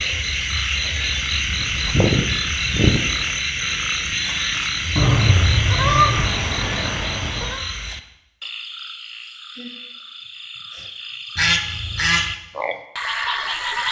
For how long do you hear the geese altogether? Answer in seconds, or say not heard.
5 s.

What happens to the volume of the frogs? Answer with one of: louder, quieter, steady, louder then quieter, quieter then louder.
quieter then louder.